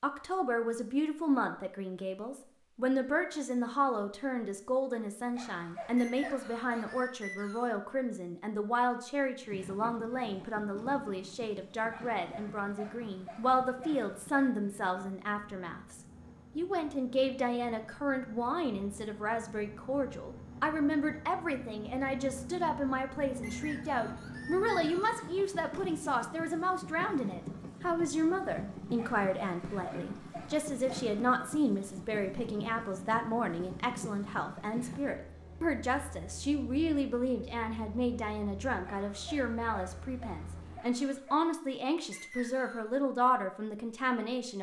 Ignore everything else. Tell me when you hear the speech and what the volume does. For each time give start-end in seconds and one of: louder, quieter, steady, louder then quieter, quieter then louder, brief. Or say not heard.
0.0-44.5 steady.